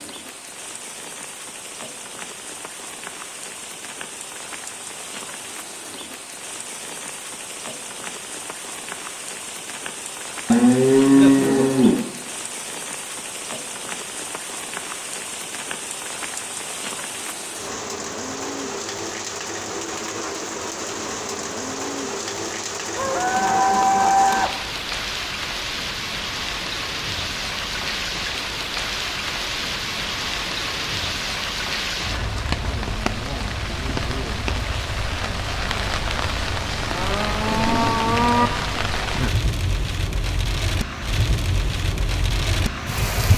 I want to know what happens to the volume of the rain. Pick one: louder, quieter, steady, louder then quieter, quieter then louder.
louder.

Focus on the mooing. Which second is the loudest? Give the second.
11 s.